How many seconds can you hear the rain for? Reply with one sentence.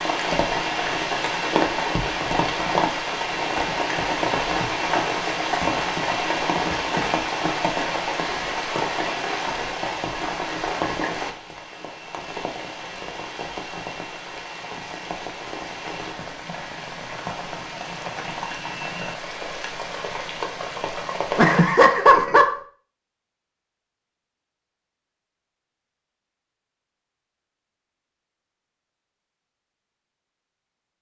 The rain can be heard for 22 seconds in total.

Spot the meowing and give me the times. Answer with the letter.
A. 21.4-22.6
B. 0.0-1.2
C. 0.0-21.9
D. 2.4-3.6
A.